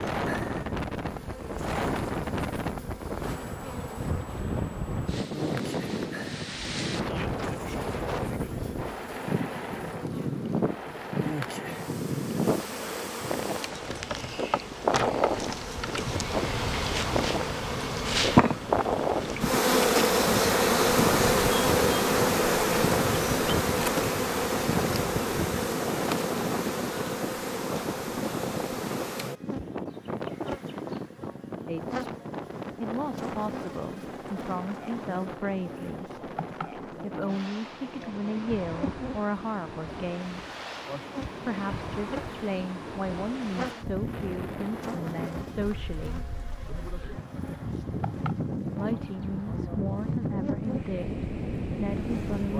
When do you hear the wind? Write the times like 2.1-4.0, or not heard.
0.0-52.5.